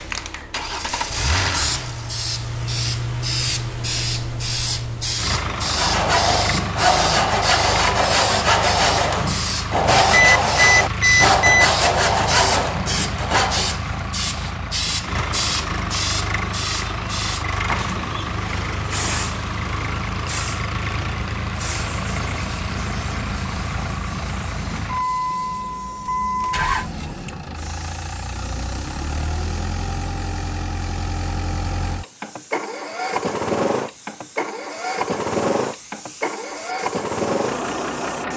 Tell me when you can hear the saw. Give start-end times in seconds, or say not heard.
5.5-13.8.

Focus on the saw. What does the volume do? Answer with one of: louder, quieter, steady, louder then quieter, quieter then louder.
steady.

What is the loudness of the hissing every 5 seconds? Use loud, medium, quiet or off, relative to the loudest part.
loud, loud, loud, loud, medium, quiet, quiet, quiet.